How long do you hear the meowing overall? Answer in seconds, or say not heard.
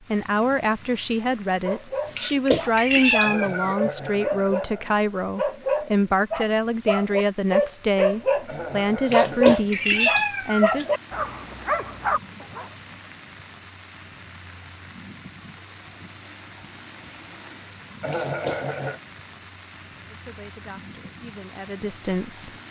4 s.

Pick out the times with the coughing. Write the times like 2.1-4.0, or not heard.
3.2-5.0, 8.4-9.4, 18.0-19.0.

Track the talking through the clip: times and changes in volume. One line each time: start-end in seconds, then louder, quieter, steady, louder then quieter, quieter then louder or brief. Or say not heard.
0.1-10.9 steady
20.1-22.5 brief.